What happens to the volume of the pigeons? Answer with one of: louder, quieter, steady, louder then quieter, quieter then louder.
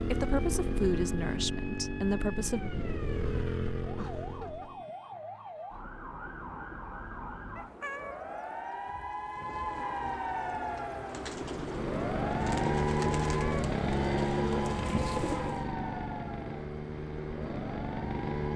louder.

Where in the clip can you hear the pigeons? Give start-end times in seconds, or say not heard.
9.2-15.7.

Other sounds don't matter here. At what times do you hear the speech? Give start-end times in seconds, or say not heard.
0.0-2.7.